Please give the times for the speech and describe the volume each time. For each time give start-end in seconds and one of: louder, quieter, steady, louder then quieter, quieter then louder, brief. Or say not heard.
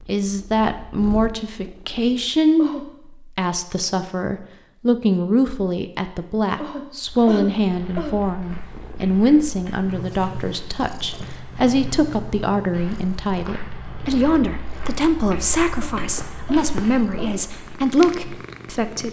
0.0-19.0 steady.